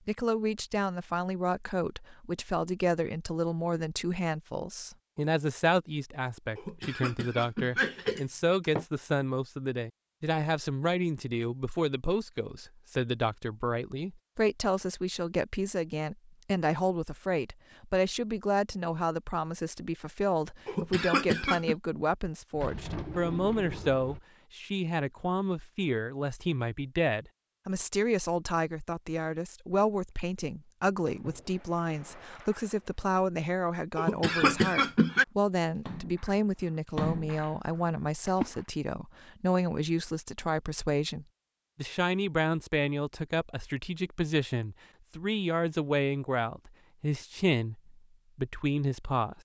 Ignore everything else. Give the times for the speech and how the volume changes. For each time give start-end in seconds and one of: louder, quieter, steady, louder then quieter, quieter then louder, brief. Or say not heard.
0.1-49.3 steady.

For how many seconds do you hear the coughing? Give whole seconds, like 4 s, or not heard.
5 s.